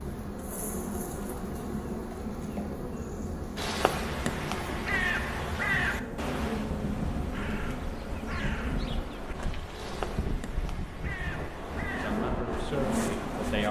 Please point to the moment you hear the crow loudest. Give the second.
6 s.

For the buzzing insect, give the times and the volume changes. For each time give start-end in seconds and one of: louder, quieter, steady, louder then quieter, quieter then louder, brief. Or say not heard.
0.0-9.3 steady
11.8-13.6 brief.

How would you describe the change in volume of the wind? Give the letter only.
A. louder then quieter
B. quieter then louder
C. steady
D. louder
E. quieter
D.